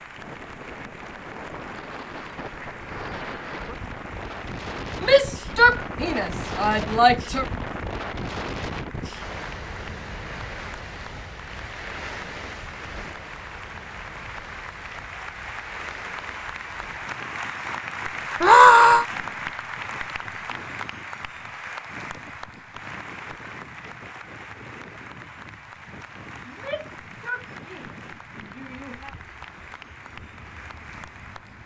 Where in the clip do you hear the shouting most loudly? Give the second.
19 s.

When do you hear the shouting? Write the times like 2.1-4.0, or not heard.
5.0-7.5, 18.4-19.1, 26.4-29.1.